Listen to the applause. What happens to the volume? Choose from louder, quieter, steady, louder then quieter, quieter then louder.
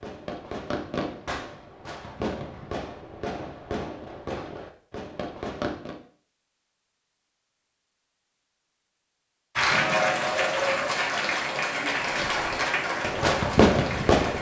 quieter.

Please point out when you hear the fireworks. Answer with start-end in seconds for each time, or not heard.
0.0-6.0, 12.1-14.3.